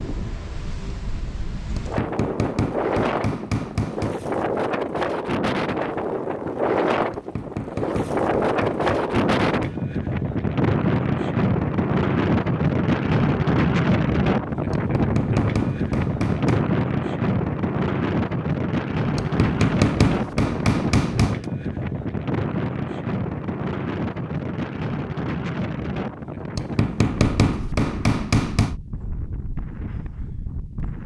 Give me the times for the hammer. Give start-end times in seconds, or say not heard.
1.8-4.2, 7.1-9.8, 14.7-16.6, 19.1-21.5, 26.6-28.8.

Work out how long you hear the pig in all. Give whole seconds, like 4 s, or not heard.
not heard.